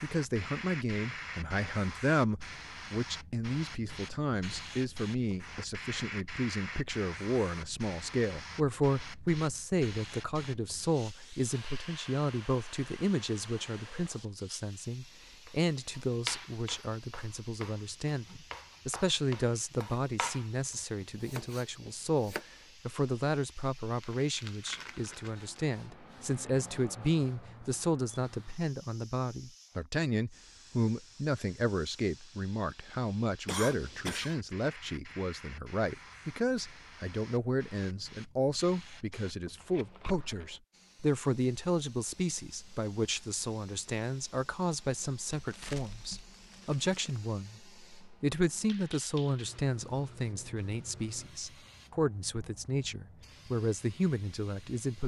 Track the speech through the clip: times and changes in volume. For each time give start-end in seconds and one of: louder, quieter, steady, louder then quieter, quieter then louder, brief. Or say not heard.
0.0-55.0 steady.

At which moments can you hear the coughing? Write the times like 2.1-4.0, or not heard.
33.5-34.4.